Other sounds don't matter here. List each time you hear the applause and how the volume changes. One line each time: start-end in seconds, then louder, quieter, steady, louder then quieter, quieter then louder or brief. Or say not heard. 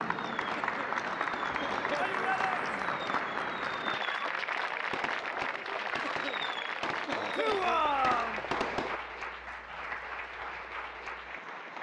0.0-11.7 quieter.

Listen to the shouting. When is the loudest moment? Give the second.
8 s.